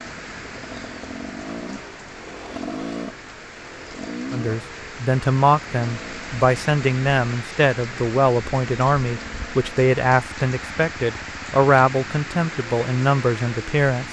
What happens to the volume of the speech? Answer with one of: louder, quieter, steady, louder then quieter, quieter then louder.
steady.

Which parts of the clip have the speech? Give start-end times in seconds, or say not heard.
4.3-14.0.